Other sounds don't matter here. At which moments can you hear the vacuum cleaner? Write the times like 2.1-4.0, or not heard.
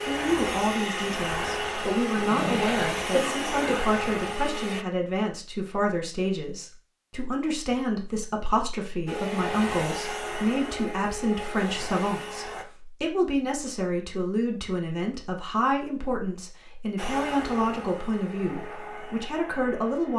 0.0-4.8, 9.1-12.7, 16.9-20.1.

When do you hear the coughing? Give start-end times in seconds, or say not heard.
2.1-3.8.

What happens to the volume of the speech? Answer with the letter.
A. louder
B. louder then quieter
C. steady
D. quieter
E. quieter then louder
C.